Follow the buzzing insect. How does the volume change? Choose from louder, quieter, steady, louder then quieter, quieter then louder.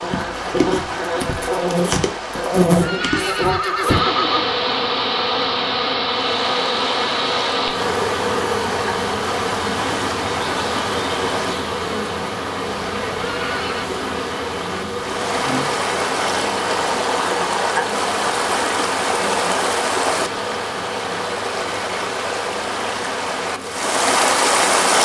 quieter.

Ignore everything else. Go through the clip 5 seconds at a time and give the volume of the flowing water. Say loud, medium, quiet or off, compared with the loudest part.
medium, medium, medium, loud, loud.